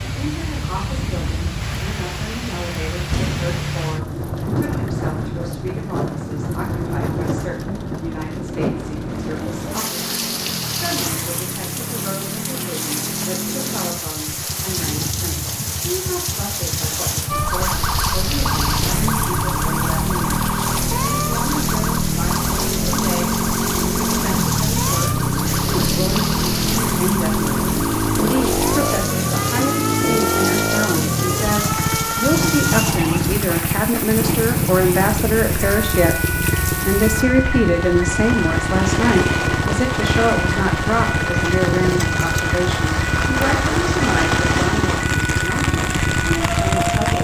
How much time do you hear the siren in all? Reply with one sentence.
The siren can be heard for 27 seconds in total.